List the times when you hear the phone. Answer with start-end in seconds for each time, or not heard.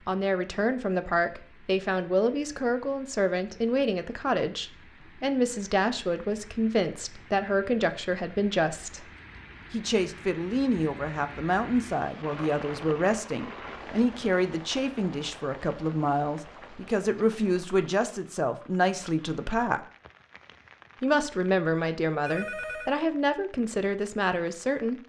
22.2-22.9.